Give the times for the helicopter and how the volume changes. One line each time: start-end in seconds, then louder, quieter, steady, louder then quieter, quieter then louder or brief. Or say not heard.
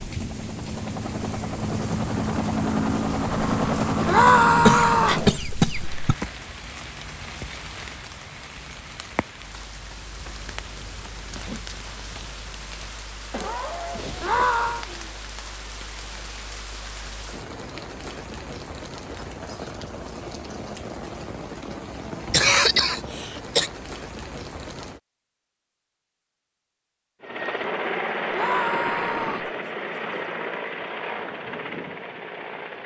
0.0-5.4 louder
27.2-32.8 quieter.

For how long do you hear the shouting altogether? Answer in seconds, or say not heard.
3 s.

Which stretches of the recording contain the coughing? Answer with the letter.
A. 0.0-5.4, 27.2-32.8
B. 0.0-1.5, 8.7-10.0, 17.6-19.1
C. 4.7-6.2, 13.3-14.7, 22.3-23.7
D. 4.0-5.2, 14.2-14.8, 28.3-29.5
C.